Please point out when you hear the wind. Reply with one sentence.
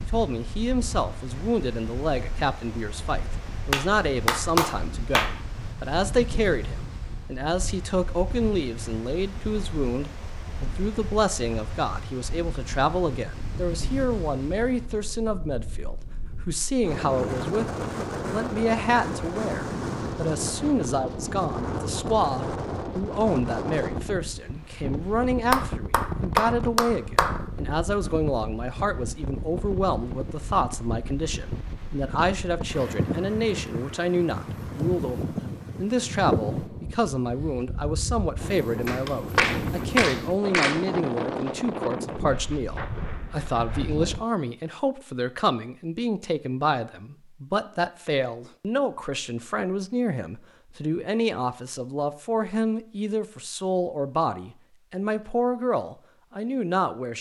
The wind can be heard from 0.0 to 44.2 s.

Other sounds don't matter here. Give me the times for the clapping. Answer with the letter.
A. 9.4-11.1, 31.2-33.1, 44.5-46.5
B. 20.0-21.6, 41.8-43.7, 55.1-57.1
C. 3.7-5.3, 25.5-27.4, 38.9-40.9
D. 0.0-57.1
C.